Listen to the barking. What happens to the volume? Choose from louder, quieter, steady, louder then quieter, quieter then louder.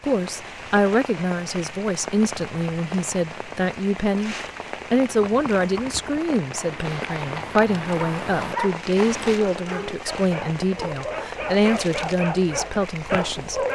louder.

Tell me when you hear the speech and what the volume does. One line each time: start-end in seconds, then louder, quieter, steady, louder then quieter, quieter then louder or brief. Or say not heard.
0.0-13.6 steady.